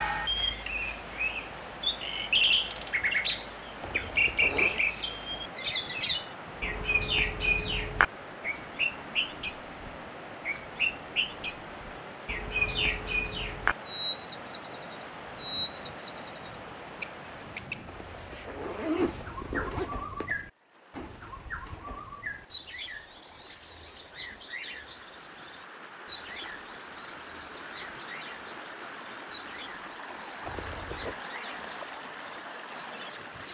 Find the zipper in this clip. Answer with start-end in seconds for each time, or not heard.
3.8-4.8, 17.9-20.4, 30.4-31.1.